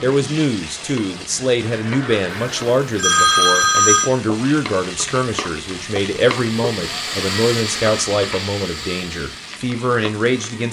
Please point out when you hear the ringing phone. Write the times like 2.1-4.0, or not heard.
2.3-4.1.